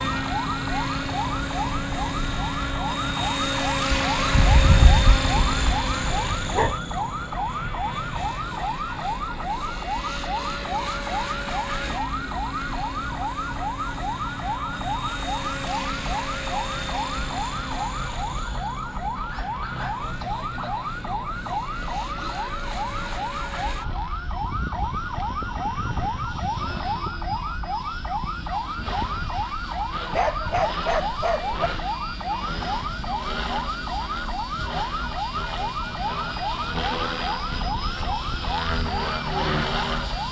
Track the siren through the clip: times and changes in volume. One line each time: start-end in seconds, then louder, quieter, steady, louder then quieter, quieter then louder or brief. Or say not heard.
0.0-40.2 steady.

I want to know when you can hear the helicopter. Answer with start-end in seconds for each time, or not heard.
0.0-40.2.